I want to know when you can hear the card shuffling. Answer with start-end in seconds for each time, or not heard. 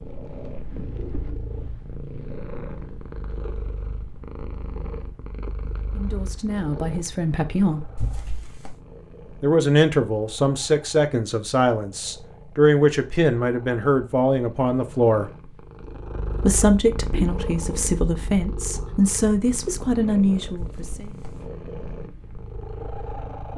8.0-8.8, 20.6-21.4.